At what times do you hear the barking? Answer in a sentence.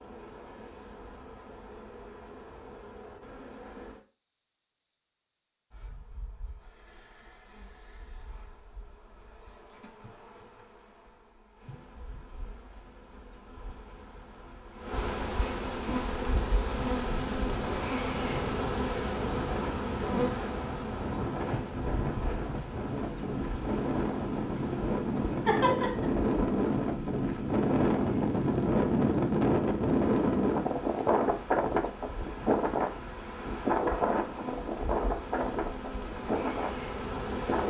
You can't hear the barking here.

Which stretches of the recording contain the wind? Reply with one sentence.
The wind can be heard from 15.8 to 37.6 s.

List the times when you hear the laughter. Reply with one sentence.
The laughter can be heard from 25.4 to 26.1 s.